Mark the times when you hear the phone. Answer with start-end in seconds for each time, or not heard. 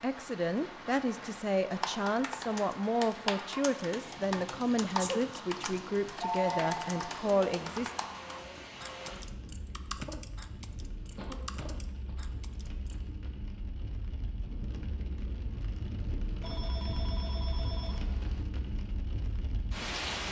6.2-6.9, 16.4-18.4.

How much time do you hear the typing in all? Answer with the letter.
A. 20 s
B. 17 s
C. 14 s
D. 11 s
D.